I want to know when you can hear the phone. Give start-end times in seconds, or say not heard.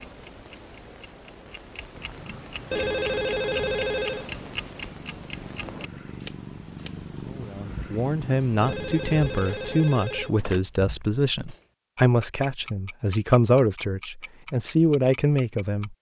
2.7-4.3, 8.6-10.6.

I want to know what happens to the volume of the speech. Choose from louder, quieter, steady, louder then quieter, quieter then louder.
steady.